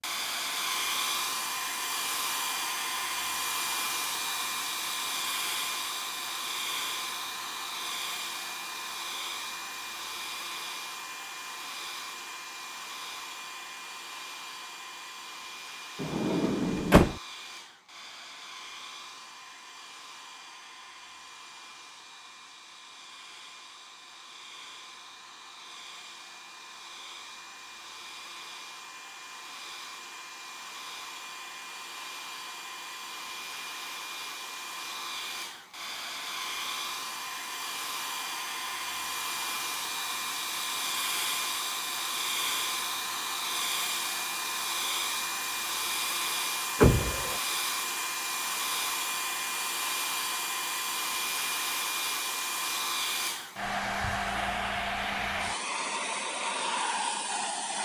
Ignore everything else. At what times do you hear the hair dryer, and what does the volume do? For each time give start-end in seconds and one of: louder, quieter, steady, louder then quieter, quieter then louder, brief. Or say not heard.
0.0-57.8 quieter then louder.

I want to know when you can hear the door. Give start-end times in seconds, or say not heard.
16.0-17.1, 46.8-47.4.